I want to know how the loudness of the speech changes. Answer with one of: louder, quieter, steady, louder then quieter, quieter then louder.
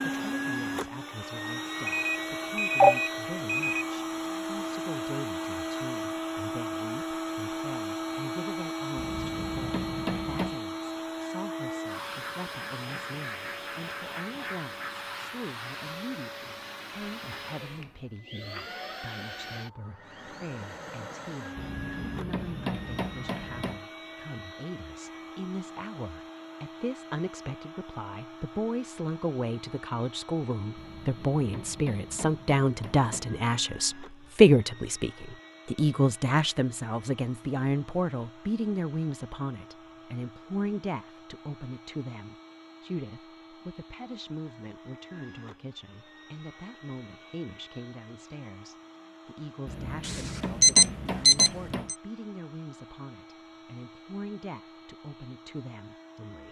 louder then quieter.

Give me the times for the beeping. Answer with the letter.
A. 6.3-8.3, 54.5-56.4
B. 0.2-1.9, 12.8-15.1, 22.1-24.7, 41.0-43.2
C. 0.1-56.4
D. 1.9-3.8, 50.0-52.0
D.